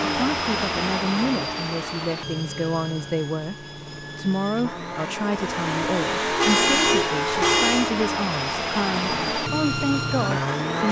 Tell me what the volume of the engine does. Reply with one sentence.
The loudness of the engine goes down, then up.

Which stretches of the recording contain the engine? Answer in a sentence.
You can hear the engine from 0.0 to 10.8 s.